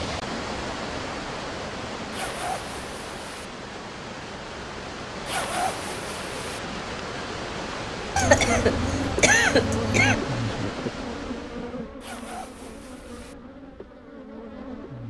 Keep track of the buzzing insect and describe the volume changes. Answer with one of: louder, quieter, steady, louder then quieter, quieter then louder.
quieter.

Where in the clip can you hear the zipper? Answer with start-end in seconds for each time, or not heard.
2.1-3.5, 5.2-6.6, 12.0-13.3.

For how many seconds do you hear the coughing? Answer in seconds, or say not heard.
2 s.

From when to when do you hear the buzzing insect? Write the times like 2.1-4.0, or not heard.
8.2-15.0.